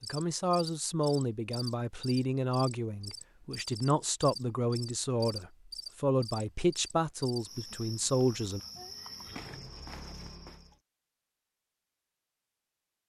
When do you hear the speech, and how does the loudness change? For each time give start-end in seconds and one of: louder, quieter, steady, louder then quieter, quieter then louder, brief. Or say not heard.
0.0-8.6 steady.